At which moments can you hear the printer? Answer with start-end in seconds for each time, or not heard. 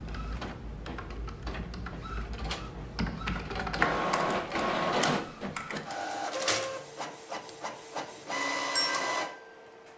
0.0-9.9.